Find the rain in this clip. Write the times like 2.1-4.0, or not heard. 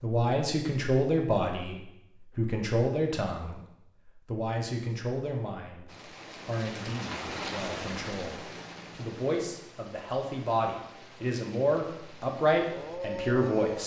5.8-13.8.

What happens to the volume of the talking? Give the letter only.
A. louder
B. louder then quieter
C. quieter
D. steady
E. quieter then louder
E.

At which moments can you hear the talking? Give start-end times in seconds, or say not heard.
0.0-13.8.